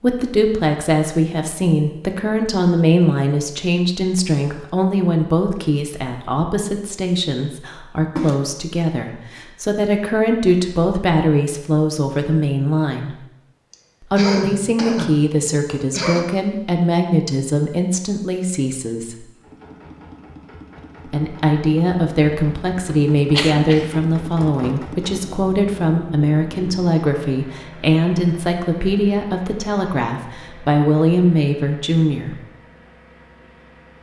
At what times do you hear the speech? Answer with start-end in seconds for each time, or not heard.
0.0-13.2, 14.0-19.2, 21.1-32.4.